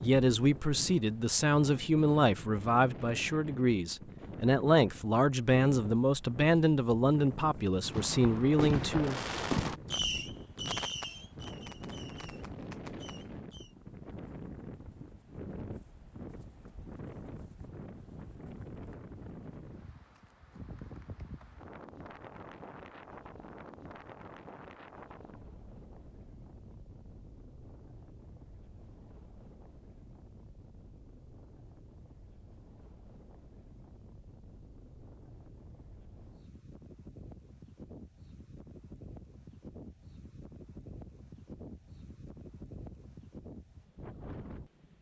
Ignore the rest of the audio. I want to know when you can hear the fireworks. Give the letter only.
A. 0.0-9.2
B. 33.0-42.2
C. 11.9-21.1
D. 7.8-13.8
D.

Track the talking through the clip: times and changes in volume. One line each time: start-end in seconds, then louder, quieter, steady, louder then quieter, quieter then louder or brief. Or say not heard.
0.0-9.2 steady.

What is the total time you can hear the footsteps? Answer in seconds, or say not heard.
not heard.